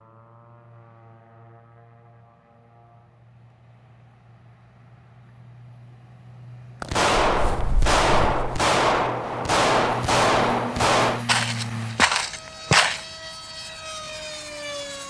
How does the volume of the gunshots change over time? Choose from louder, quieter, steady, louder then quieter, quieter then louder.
steady.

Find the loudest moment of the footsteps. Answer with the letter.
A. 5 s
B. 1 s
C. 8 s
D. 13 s
D.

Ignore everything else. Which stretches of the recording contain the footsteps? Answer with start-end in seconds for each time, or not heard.
6.8-8.6, 11.2-13.1.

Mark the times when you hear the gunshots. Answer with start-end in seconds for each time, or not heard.
6.9-11.2.